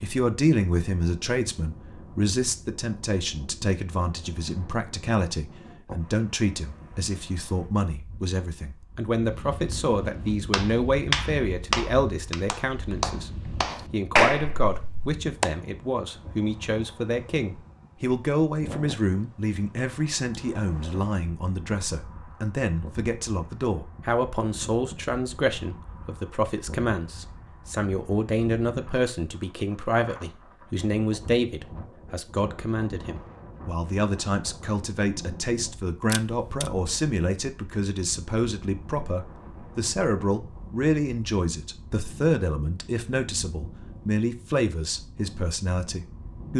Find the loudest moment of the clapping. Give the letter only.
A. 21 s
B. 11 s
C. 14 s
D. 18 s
C.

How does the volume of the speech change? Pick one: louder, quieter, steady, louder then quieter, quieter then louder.
steady.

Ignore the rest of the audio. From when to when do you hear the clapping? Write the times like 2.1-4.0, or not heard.
10.5-15.4.